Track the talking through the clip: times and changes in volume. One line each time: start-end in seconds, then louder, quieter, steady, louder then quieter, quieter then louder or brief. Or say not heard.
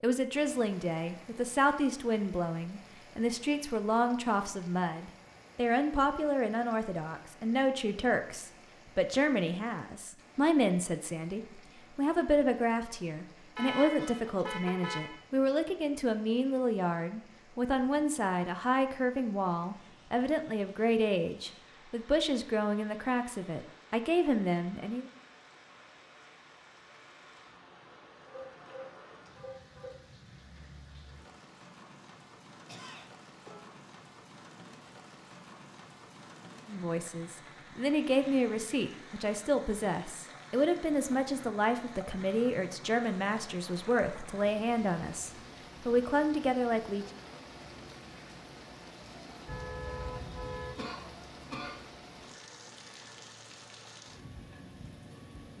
0.0-25.1 steady
36.6-47.0 steady.